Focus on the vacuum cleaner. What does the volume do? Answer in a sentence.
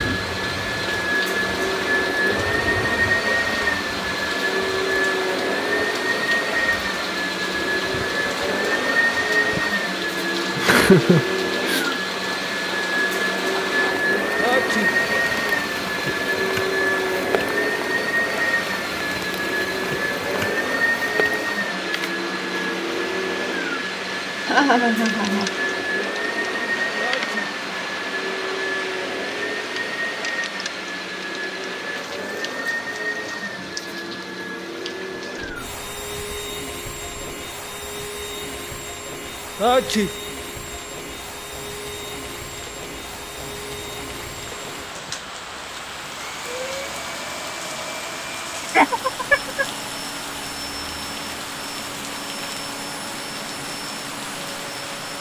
The loudness of the vacuum cleaner goes down.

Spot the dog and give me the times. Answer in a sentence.
The dog can't be heard in this clip.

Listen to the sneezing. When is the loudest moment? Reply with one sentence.
The loudest moment of the sneezing is at 40 seconds.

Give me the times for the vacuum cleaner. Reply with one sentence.
You can hear the vacuum cleaner from 0.0 to 55.1 s.